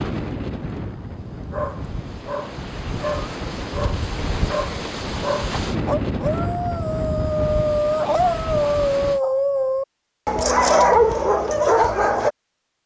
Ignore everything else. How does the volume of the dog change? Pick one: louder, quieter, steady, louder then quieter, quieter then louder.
louder.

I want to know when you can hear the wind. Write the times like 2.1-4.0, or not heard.
0.0-9.2.